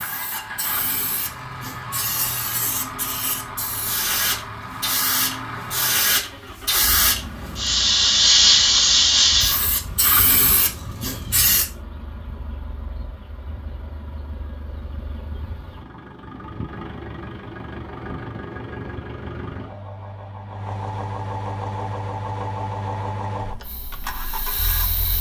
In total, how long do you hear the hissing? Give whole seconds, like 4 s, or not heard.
13 s.